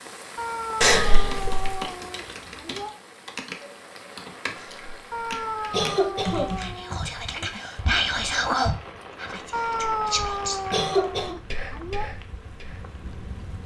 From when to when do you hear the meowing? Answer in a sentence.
The meowing can be heard from 0.3 to 3.0 s, from 5.1 to 7.5 s and from 9.5 to 12.1 s.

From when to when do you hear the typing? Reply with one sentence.
You can hear the typing from 1.1 to 6.8 s.